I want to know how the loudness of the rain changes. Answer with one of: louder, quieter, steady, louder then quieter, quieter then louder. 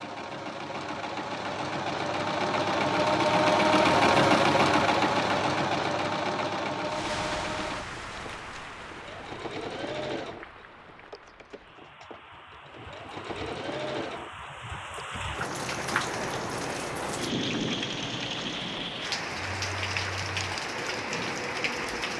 quieter then louder.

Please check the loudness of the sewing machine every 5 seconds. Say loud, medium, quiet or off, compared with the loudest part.
loud, medium, quiet, quiet, quiet.